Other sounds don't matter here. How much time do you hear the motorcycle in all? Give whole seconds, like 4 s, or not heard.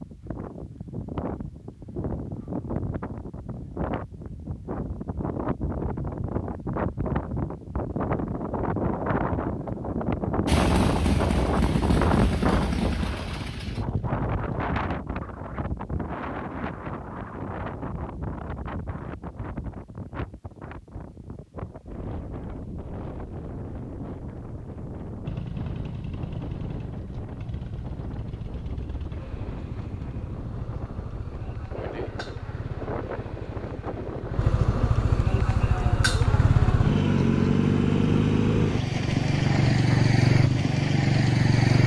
21 s.